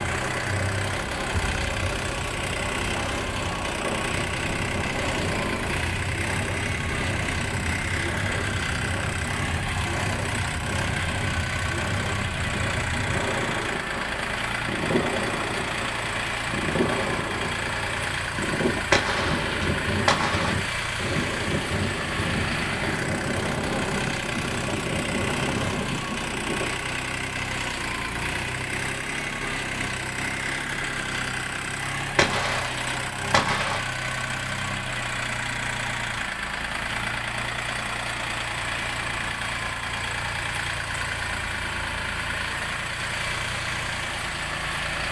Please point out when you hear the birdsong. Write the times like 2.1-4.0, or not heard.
not heard.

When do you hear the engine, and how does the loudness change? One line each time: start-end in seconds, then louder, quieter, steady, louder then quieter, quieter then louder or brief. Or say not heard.
0.0-45.0 steady.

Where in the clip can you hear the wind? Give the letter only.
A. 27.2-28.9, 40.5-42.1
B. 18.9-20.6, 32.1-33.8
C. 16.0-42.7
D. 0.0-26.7
D.